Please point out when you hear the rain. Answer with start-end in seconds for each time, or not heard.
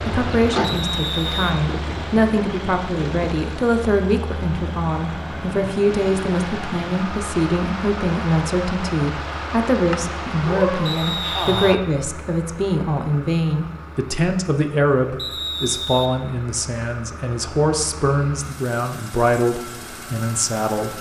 0.0-11.8.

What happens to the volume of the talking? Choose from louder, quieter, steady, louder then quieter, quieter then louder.
steady.